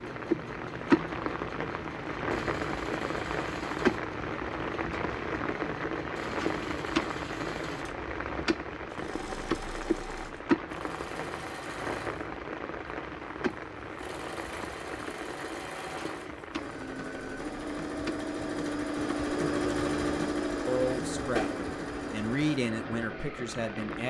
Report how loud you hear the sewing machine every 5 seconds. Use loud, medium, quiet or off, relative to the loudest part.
medium, medium, medium, loud, loud.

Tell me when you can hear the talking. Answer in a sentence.
The talking can be heard from 20.6 to 24.0 s.